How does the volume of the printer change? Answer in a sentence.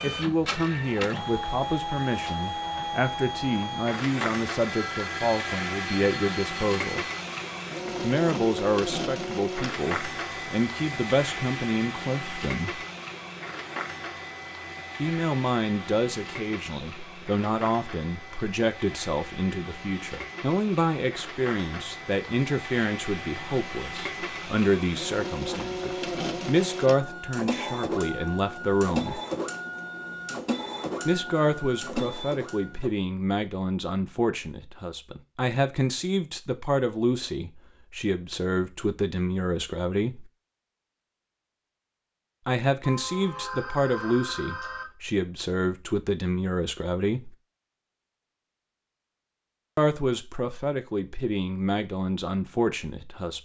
The loudness of the printer goes down, then up.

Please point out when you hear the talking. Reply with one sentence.
You can hear the talking from 0.0 to 7.0 s, from 8.0 to 12.8 s, from 14.9 to 29.2 s, from 31.1 to 40.3 s, from 42.5 to 47.4 s and from 49.8 to 53.4 s.